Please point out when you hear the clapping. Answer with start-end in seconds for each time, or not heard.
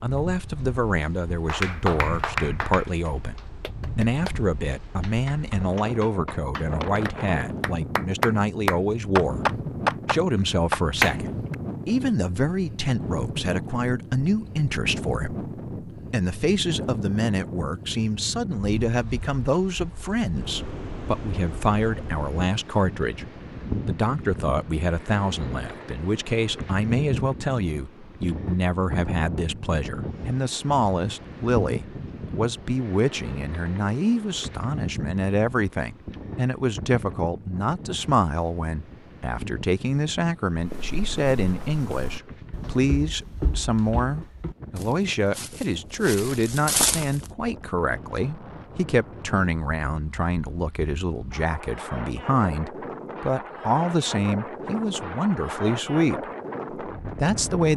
1.4-11.6.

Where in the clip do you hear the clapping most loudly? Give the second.
11 s.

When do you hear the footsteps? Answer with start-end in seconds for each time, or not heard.
40.5-47.3.